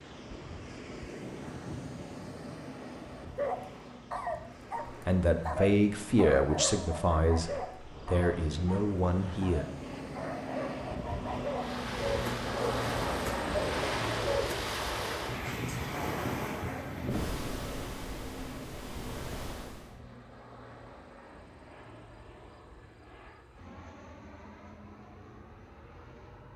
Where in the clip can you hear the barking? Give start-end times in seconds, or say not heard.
3.4-14.6.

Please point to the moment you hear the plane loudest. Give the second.
13 s.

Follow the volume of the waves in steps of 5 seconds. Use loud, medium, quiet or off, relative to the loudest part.
medium, medium, loud, loud, off, off.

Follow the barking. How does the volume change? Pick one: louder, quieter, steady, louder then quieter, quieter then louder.
quieter then louder.